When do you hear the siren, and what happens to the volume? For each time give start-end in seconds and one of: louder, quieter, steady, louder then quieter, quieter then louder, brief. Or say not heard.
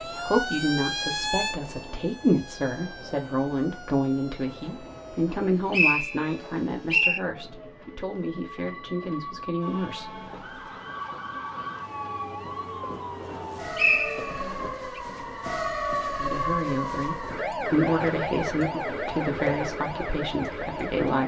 0.0-7.8 quieter
9.6-21.2 louder.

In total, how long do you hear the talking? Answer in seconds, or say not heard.
15 s.